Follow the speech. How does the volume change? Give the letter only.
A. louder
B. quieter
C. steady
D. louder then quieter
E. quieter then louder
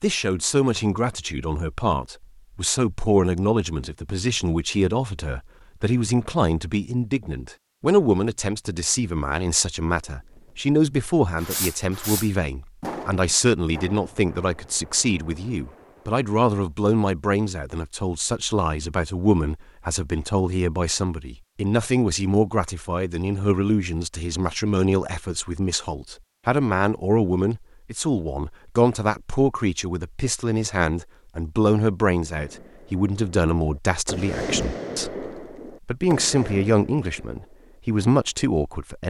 C.